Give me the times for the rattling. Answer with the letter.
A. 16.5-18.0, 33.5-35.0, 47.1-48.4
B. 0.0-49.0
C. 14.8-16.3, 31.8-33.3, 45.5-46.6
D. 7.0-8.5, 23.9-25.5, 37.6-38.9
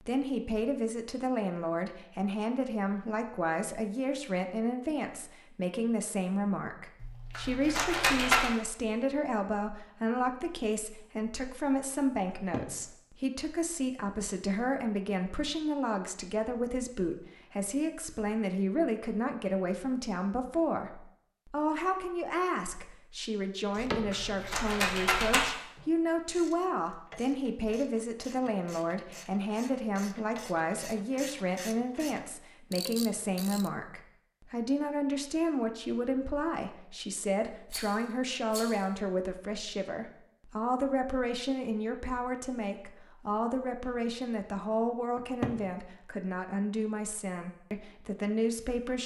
D.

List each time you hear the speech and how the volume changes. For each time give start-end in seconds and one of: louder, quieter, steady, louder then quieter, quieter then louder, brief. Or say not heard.
0.0-49.0 steady.